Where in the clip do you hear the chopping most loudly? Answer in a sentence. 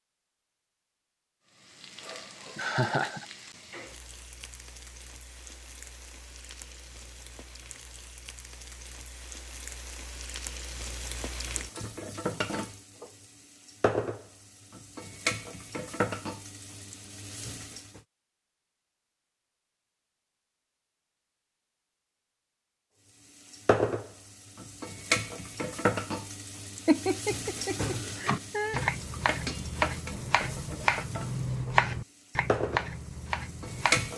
The loudest moment of the chopping is at 32 seconds.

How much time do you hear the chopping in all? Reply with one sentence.
You can hear the chopping for 6 seconds altogether.